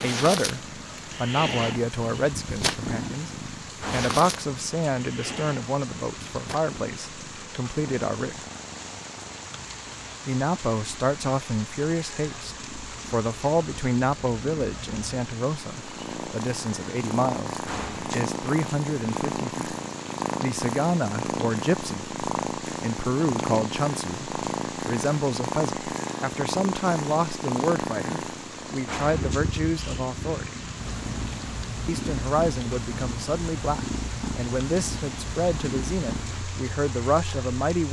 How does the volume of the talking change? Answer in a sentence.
The loudness of the talking stays about the same.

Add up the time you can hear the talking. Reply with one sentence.
You can hear the talking for 34 seconds altogether.